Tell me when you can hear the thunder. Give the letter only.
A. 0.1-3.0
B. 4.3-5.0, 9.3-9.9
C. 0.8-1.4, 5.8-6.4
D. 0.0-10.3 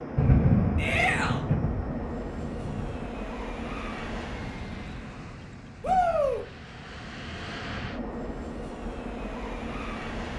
A.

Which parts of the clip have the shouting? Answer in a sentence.
You can hear the shouting from 0.8 to 1.4 s and from 5.8 to 6.4 s.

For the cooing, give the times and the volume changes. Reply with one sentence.
You can't hear the cooing here.